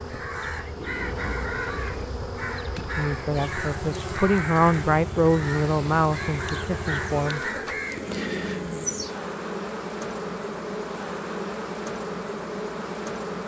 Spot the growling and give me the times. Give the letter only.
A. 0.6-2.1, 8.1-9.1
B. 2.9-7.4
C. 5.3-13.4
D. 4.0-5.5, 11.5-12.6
A.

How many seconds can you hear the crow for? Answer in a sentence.
You can hear the crow for 8 seconds altogether.